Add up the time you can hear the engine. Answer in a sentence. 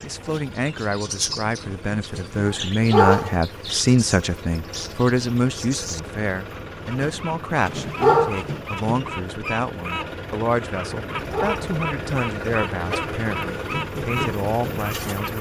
The engine can be heard for 15 seconds in total.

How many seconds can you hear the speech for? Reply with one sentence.
You can hear the speech for 15 seconds altogether.